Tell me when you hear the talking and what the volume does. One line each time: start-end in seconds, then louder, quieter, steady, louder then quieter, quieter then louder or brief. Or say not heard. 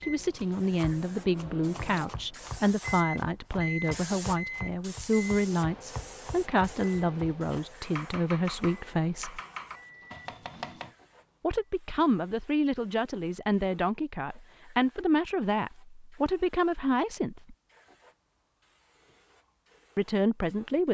0.0-9.4 steady
11.4-17.6 steady
19.9-20.8 brief.